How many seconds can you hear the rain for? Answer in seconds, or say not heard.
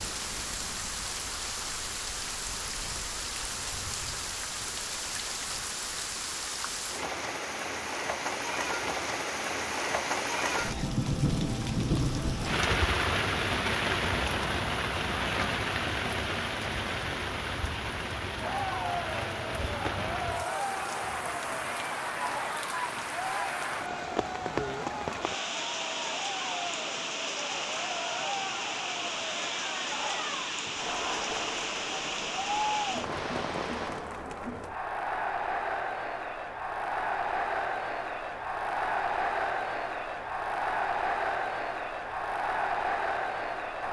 34 s.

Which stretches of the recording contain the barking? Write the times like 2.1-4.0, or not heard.
not heard.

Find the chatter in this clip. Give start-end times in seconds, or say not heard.
18.4-43.8.